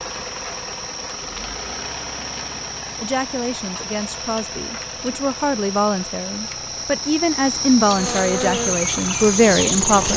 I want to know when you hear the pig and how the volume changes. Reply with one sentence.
The pig can't be heard in this clip.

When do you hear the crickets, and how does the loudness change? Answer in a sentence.
The crickets can be heard from 0.0 to 10.1 s, getting louder.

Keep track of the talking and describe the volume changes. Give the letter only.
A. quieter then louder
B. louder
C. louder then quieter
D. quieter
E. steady
B.